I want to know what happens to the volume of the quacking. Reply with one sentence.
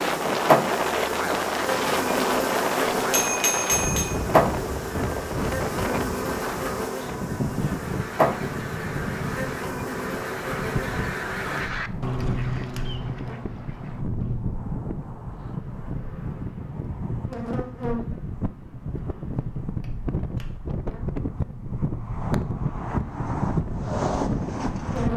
The volume of the quacking goes up, then down.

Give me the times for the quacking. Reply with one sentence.
The quacking can be heard from 7.8 to 14.4 s.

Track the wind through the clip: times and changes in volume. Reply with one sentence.
You can hear the wind from 0.0 to 25.1 s, getting quieter then louder.